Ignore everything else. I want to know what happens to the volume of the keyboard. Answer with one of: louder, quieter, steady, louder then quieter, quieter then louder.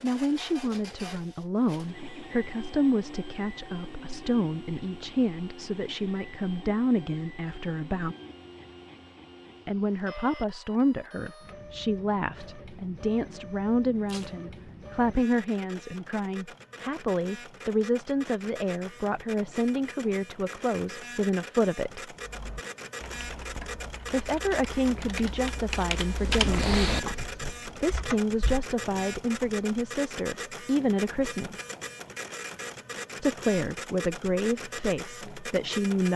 louder then quieter.